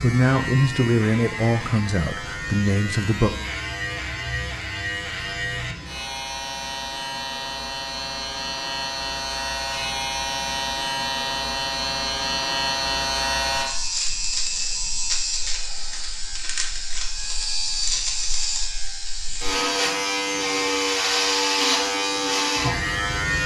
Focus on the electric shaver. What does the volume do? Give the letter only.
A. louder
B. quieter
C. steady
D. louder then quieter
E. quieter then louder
A.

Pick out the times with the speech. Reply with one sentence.
You can hear the speech from 0.0 to 3.3 s.